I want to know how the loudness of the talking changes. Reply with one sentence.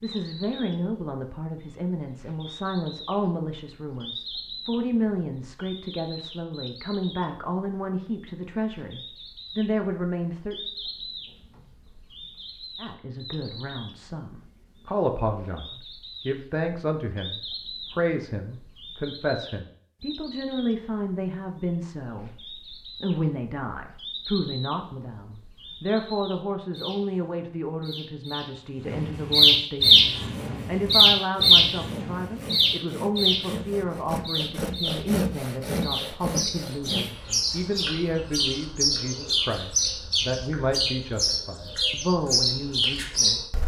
The volume of the talking stays about the same.